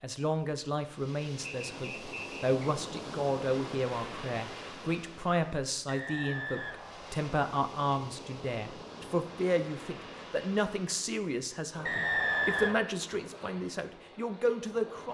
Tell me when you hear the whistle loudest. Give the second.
12 s.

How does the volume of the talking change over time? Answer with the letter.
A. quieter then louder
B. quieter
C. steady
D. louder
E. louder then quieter
C.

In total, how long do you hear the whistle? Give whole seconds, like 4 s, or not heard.
4 s.